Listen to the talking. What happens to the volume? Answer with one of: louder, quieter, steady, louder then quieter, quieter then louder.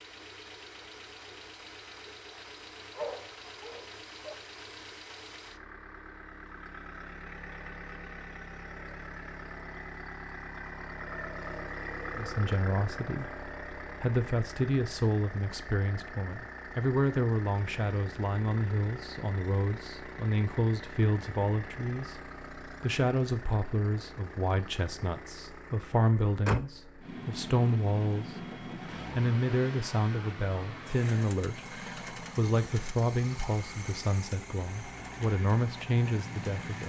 steady.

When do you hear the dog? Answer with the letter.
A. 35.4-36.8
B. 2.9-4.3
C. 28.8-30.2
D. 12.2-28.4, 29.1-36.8
B.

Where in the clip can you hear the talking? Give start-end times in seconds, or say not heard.
12.2-28.4, 29.1-36.8.